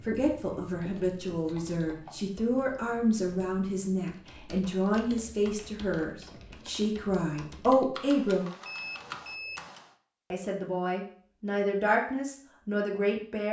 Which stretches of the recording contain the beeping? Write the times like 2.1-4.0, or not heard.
8.6-9.7.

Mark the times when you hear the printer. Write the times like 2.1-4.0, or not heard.
not heard.